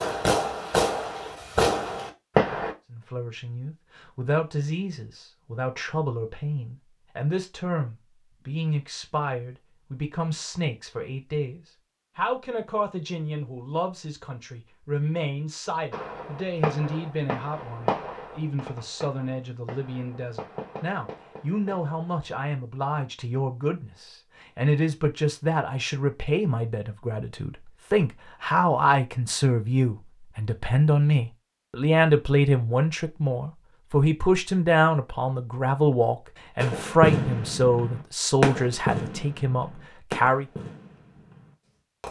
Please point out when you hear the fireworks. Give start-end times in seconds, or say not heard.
0.0-2.8, 15.9-22.5, 36.5-42.0.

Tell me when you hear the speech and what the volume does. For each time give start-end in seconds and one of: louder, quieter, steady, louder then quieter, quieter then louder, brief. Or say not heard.
2.9-40.5 louder.